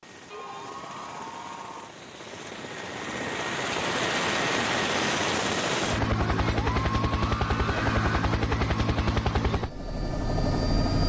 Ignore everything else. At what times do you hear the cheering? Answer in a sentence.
The cheering can be heard from 0.3 to 1.9 s and from 6.2 to 8.2 s.